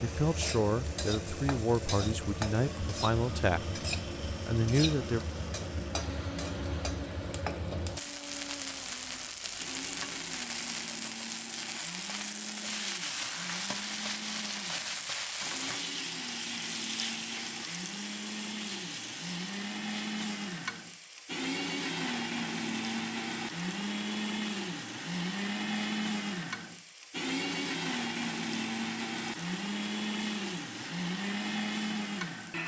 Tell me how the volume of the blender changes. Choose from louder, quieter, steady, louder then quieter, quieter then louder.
louder.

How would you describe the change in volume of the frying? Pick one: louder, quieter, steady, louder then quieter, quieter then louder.
quieter.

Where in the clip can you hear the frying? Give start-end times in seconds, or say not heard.
0.0-32.6.